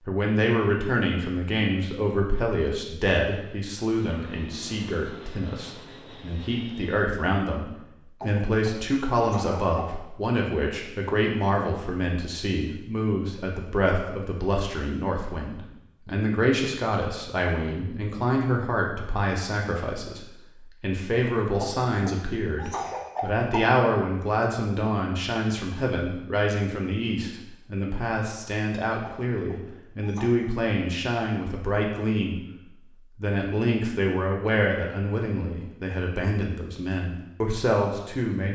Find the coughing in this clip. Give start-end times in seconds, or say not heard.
8.2-9.9, 21.6-23.6, 29.0-30.4.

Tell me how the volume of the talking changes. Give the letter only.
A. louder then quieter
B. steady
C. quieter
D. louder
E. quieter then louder
B.